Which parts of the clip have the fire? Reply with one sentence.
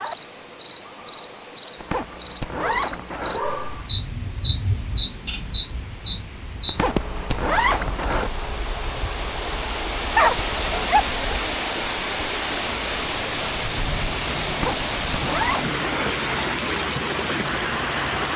The fire can't be heard in this clip.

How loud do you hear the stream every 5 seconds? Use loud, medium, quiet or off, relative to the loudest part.
quiet, medium, loud, loud.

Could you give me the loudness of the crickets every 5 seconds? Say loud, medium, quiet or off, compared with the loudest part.
loud, medium, quiet, quiet.